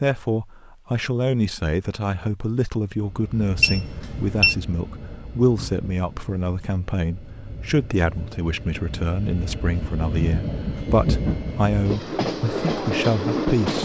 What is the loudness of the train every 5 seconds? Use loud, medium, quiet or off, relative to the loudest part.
quiet, quiet, loud.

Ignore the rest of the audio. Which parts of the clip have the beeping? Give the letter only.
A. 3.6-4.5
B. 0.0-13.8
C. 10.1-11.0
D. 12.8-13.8
A.